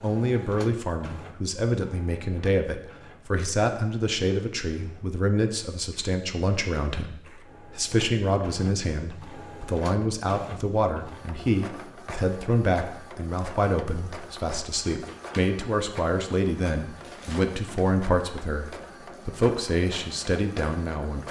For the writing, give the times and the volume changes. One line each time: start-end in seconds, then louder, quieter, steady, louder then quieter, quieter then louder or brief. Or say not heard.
not heard.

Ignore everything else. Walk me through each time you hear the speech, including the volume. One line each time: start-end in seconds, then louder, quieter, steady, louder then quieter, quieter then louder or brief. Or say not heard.
0.0-21.2 steady.